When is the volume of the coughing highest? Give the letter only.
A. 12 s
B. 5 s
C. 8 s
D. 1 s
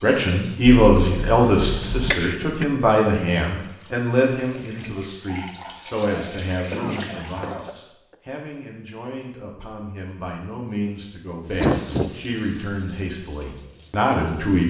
A.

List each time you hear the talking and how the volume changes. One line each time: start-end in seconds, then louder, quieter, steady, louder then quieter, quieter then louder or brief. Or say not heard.
0.0-14.6 quieter then louder.